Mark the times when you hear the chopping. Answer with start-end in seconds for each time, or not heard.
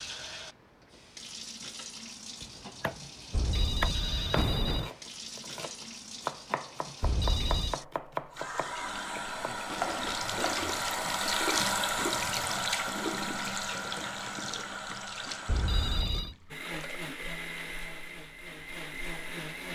2.4-10.6.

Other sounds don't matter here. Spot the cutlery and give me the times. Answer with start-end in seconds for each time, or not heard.
not heard.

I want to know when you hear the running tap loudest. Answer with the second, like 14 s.
12 s.